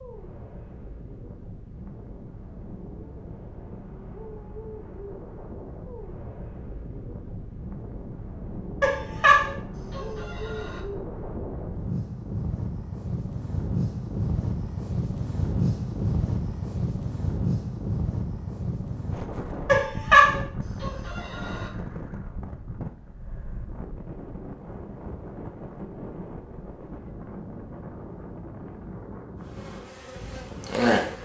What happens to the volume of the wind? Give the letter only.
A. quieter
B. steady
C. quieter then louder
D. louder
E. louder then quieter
E.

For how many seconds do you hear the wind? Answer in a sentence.
You can hear the wind for 31 seconds altogether.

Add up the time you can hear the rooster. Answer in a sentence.
You can hear the rooster for 4 seconds altogether.